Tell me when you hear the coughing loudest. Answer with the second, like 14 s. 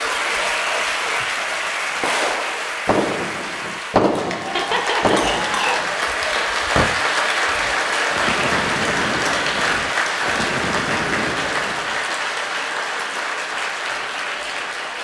5 s.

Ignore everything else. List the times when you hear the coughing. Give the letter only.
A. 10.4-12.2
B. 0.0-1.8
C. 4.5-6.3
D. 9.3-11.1
C.